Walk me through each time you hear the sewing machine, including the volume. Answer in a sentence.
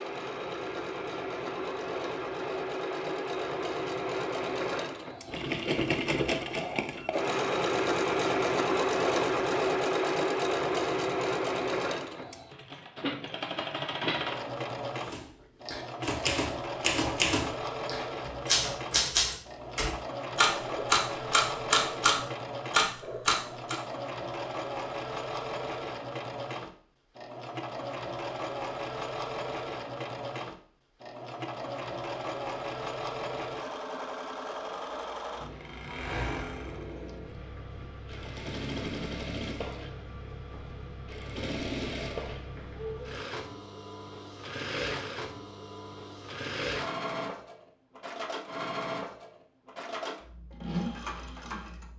The sewing machine can be heard from 0.0 to 51.9 s, getting quieter.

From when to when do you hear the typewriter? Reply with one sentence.
You can hear the typewriter from 15.0 to 23.8 s.